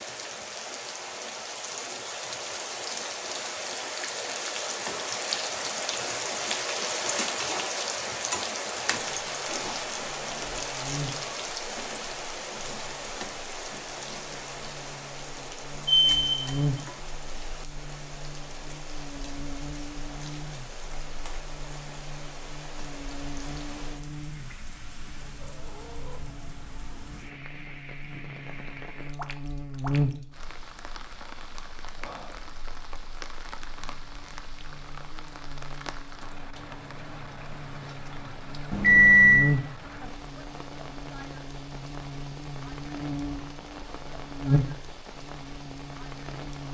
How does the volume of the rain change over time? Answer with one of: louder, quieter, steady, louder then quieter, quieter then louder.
quieter.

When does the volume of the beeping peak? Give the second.
39 s.